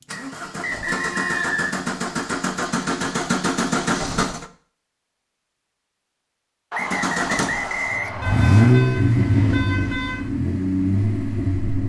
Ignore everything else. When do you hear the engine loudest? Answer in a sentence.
The volume of the engine peaks at 9 seconds.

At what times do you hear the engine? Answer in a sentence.
The engine can be heard from 0.0 to 4.5 s and from 6.8 to 11.8 s.